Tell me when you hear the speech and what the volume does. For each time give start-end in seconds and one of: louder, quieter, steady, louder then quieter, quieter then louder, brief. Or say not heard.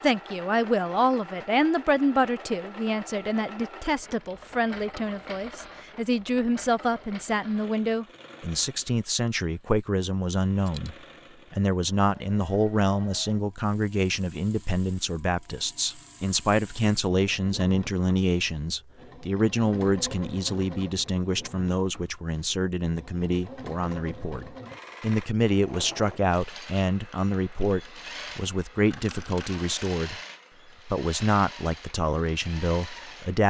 0.0-30.2 steady
30.9-33.4 brief.